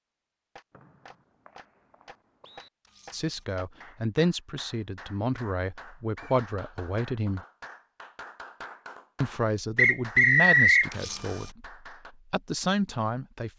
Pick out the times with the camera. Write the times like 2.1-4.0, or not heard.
2.8-3.5, 10.9-11.6.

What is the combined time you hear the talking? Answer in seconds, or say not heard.
9 s.